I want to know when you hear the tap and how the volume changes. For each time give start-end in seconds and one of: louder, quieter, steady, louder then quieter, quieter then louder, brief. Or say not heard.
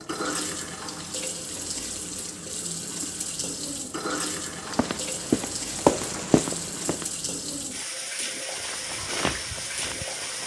0.0-10.4 steady.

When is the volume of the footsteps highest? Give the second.
6 s.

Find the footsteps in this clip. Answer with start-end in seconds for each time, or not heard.
4.5-7.0, 8.6-10.4.